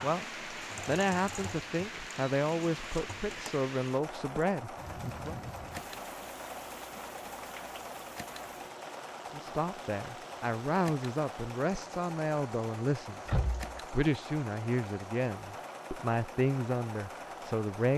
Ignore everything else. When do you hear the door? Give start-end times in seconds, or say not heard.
13.2-13.8.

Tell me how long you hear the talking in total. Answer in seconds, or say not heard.
14 s.